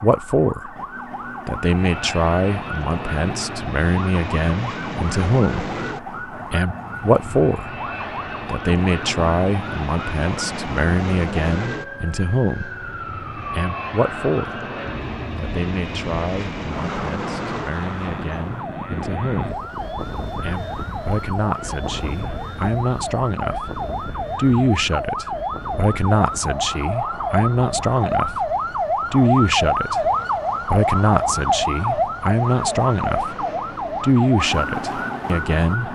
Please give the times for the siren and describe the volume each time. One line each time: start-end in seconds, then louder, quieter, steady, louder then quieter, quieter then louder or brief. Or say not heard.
0.0-35.9 louder.